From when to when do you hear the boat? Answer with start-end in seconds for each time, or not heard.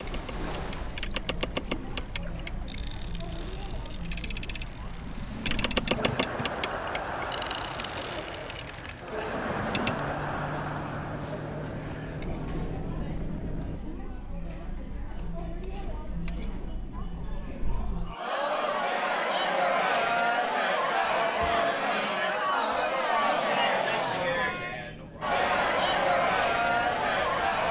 0.0-13.8, 24.1-27.6.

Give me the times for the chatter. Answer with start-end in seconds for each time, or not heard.
0.0-27.6.